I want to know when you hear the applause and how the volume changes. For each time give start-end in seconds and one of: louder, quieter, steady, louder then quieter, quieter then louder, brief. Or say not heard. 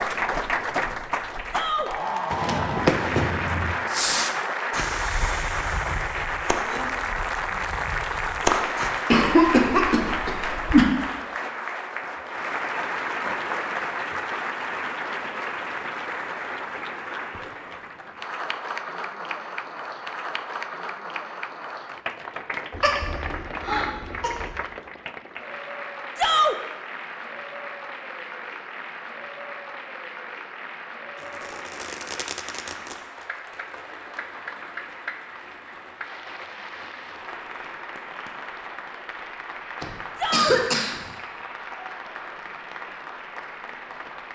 0.0-44.3 quieter.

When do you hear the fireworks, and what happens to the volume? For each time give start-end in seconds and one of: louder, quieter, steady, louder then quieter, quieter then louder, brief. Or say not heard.
2.3-8.9 quieter then louder
31.1-37.8 quieter.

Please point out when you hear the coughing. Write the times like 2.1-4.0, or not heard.
9.1-10.8, 22.7-24.5, 39.8-41.1.